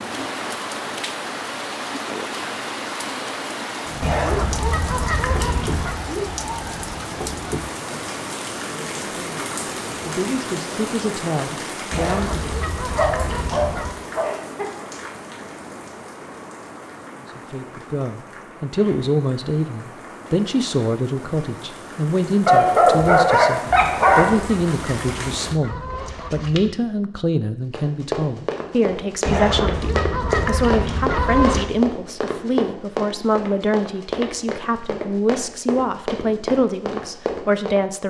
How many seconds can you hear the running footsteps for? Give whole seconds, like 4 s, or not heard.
10 s.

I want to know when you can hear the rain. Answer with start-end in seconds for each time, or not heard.
0.0-25.6.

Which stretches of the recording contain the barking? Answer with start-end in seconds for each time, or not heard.
12.9-14.7, 22.4-24.3.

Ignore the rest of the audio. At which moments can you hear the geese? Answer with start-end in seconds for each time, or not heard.
4.0-6.0, 11.9-14.0, 23.8-26.6, 29.2-31.7.